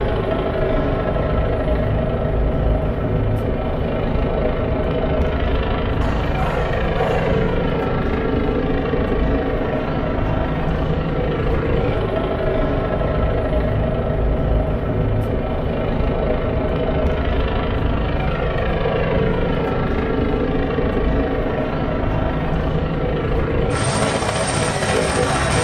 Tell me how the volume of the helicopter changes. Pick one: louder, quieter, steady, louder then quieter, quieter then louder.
steady.